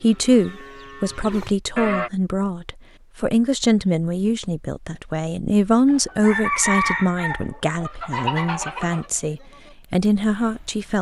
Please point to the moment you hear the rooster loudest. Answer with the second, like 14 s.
7 s.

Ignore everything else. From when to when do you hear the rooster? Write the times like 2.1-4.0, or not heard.
5.8-9.1.